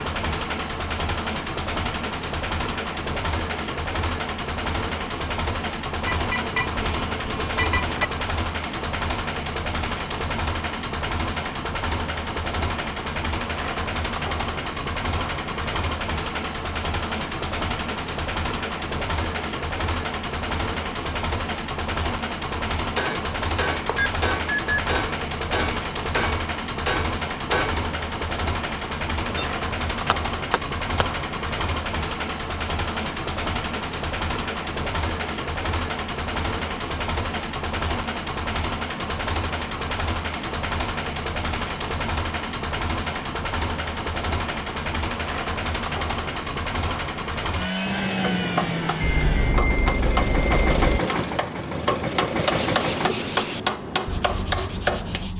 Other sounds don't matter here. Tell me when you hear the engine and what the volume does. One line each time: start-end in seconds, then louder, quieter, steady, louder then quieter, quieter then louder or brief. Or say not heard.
0.0-53.1 steady.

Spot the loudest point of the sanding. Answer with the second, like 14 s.
53 s.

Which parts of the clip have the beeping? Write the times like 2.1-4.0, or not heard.
6.0-8.1, 23.9-24.9, 49.0-51.0.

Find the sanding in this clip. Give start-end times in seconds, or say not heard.
52.4-55.3.